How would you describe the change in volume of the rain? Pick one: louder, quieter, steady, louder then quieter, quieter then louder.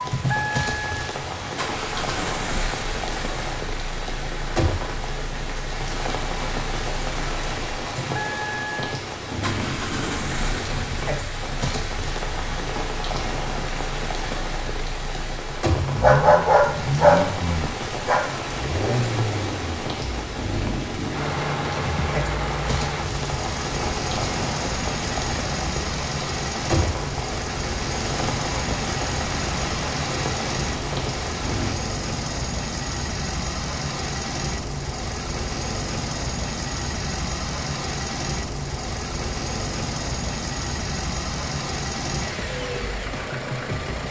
steady.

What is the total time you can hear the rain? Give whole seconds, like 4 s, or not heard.
32 s.